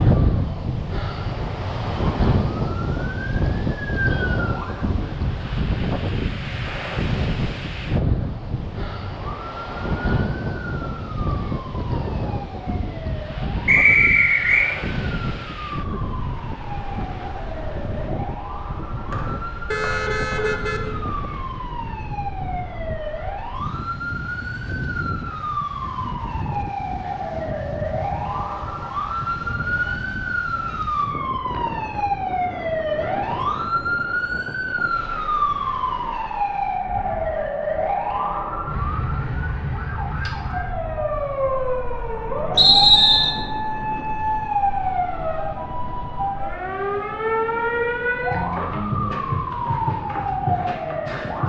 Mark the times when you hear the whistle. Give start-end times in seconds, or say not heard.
13.7-14.7, 19.1-20.6, 42.5-43.3.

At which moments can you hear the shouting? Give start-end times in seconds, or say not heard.
not heard.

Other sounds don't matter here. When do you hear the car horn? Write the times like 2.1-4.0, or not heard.
19.7-20.8.